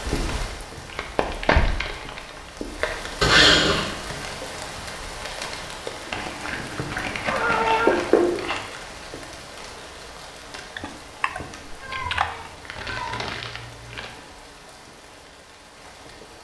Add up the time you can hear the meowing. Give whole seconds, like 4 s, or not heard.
4 s.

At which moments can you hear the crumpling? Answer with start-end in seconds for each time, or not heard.
0.8-2.5, 6.1-8.7, 12.8-14.1.